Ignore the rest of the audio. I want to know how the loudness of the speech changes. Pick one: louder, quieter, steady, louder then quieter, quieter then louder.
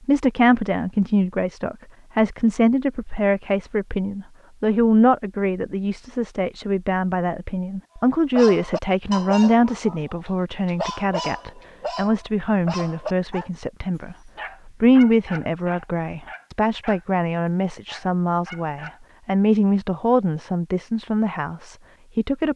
steady.